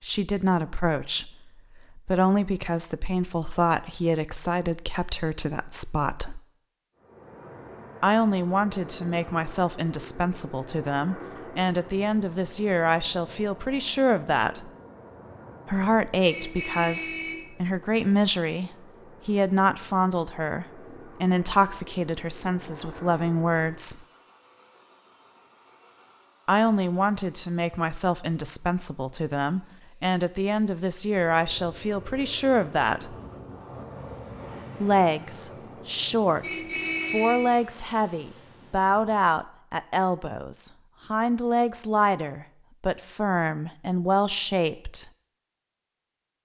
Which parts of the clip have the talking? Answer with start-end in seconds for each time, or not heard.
0.0-6.4, 8.0-14.7, 15.7-24.0, 26.4-33.1, 34.8-45.0.